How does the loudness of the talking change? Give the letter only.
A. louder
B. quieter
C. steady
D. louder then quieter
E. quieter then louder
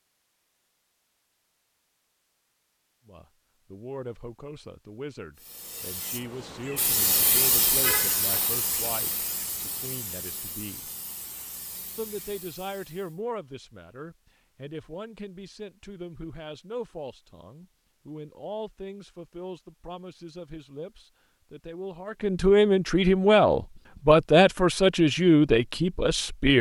A.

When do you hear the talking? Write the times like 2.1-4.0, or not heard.
3.0-10.9, 11.9-26.5.